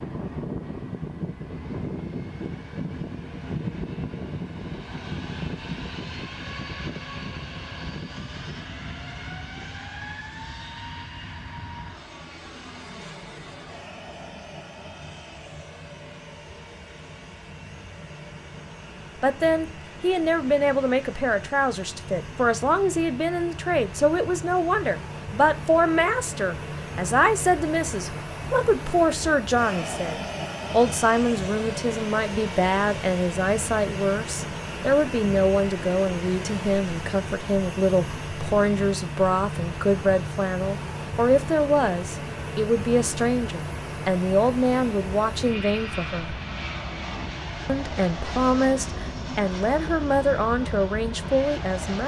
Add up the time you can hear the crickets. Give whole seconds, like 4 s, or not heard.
not heard.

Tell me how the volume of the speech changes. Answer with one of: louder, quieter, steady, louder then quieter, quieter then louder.
steady.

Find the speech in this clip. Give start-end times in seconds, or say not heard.
19.2-46.4, 47.6-52.0.